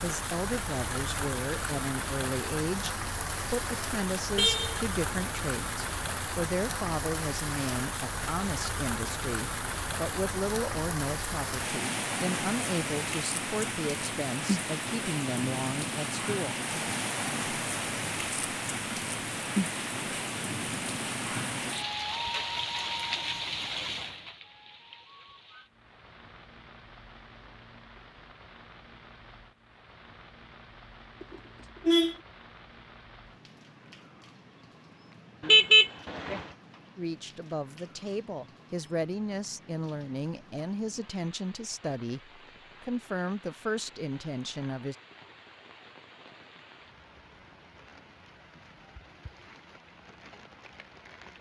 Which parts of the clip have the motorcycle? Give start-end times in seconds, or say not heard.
not heard.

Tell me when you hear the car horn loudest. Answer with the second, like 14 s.
36 s.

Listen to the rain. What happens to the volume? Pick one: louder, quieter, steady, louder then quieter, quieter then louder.
quieter.